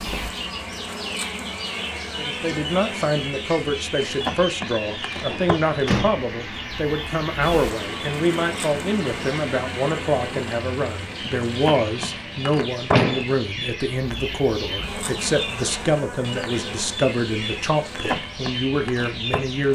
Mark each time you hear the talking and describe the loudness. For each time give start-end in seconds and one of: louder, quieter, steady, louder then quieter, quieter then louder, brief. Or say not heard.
2.1-19.6 steady.